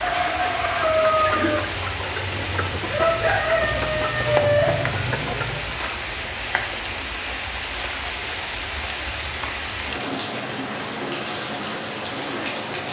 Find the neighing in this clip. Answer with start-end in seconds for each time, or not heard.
not heard.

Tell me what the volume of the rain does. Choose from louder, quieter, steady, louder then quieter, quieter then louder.
steady.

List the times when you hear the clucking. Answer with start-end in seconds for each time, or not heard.
0.0-5.7.